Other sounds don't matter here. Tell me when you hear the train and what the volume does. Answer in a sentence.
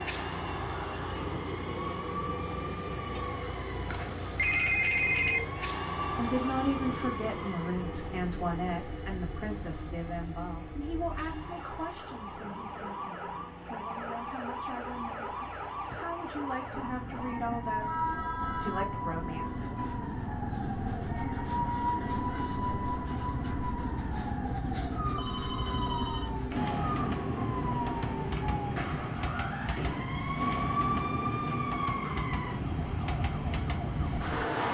The train can be heard from 0.0 to 34.6 s, getting quieter then louder.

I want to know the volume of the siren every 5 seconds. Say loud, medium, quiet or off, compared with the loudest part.
medium, medium, medium, loud, loud, loud, loud.